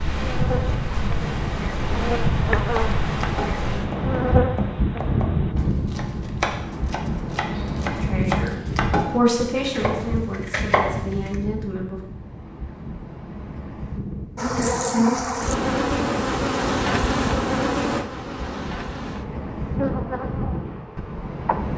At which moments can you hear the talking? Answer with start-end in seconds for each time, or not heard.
8.0-12.0.